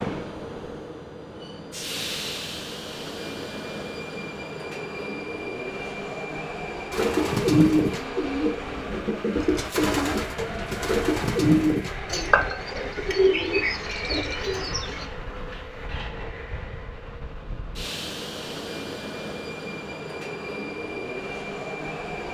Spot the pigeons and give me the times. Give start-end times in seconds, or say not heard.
6.9-15.1.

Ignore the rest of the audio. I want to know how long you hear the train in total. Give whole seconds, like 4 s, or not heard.
22 s.